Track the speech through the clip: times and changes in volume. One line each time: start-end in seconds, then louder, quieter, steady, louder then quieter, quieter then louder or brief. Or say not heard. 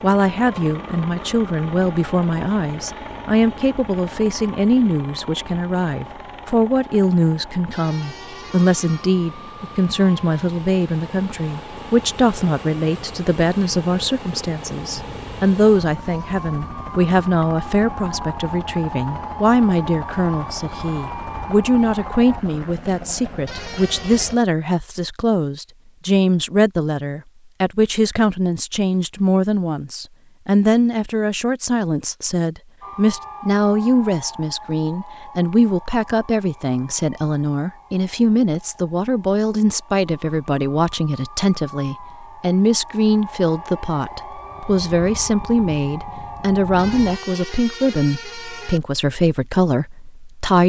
0.0-50.6 steady.